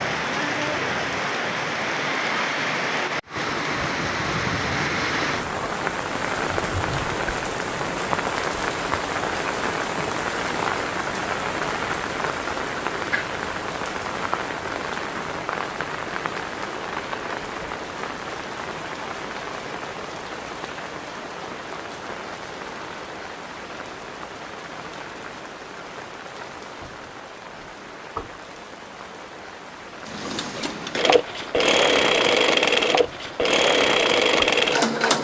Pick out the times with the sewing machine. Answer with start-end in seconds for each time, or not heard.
30.1-35.1.